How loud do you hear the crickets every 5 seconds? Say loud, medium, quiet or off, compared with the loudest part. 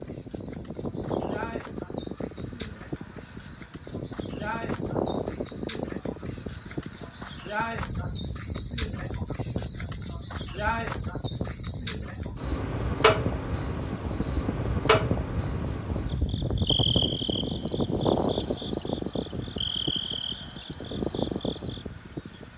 medium, loud, loud, medium, medium.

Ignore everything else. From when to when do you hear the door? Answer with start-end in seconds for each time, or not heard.
13.9-14.6.